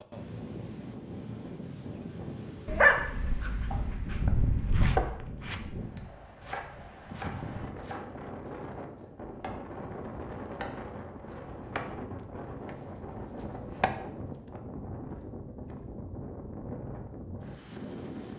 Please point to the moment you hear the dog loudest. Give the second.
3 s.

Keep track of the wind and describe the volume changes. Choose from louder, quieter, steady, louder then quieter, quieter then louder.
steady.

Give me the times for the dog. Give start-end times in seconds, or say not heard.
2.6-5.0.